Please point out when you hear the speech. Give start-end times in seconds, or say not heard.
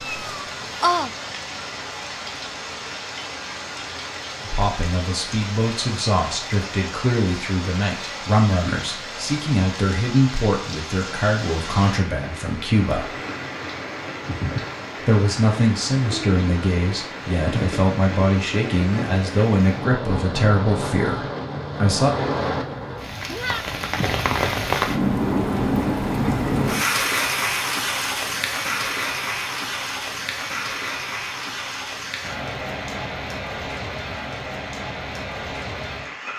4.4-13.1, 15.1-22.1.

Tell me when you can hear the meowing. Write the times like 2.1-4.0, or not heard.
0.0-1.1, 23.2-24.2.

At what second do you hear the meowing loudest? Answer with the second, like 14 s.
1 s.